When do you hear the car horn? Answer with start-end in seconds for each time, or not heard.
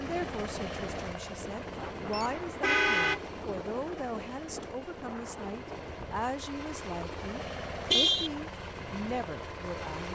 2.1-3.2, 7.9-8.3.